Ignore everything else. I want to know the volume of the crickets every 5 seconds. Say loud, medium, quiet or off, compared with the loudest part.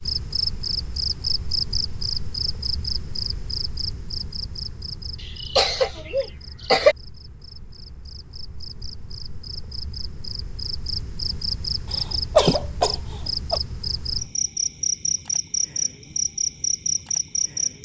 loud, quiet, loud, loud.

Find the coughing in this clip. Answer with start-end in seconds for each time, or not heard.
5.2-7.0, 11.9-13.6.